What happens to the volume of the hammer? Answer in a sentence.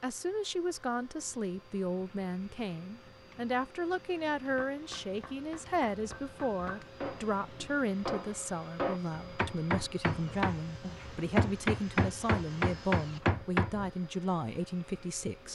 The loudness of the hammer goes up.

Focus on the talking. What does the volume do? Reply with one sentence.
The volume of the talking stays about the same.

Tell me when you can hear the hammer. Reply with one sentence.
You can hear the hammer from 4.5 to 13.9 s.